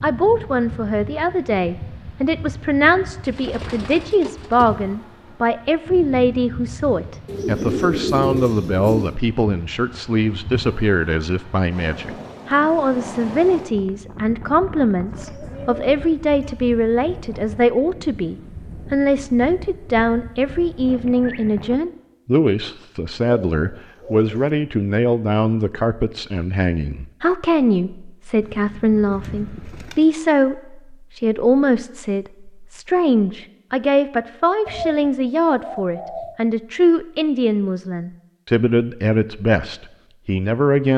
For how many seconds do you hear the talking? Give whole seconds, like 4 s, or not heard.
41 s.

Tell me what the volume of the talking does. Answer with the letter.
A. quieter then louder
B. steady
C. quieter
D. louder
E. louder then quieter
B.